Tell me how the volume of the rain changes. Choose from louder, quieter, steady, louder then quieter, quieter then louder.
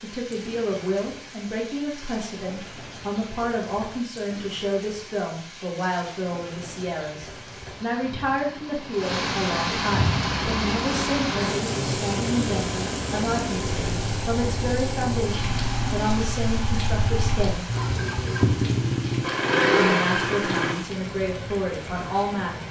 louder then quieter.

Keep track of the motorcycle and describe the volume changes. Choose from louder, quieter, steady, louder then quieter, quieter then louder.
louder.